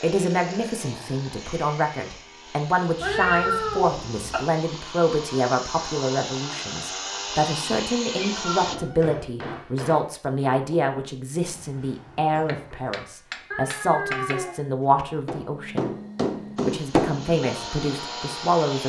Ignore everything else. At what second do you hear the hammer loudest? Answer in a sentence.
The volume of the hammer peaks at 17 seconds.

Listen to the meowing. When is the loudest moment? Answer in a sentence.
The loudest moment of the meowing is at 3 seconds.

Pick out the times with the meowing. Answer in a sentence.
You can hear the meowing from 3.0 to 4.4 s, from 8.2 to 9.2 s and from 13.5 to 14.6 s.